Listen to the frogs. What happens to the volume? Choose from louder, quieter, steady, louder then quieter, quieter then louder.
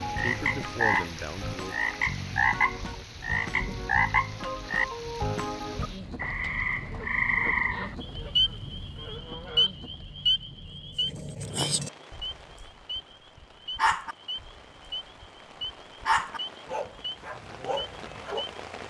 quieter.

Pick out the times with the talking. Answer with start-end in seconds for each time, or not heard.
0.1-1.8.